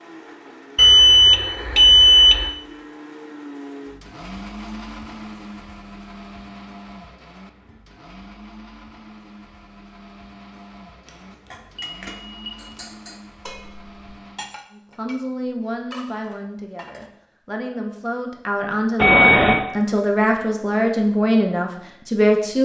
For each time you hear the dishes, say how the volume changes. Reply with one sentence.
You can hear the dishes from 11.5 to 17.1 s, getting quieter then louder.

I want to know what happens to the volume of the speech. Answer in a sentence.
The loudness of the speech goes up.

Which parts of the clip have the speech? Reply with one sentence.
You can hear the speech from 14.8 to 22.6 s.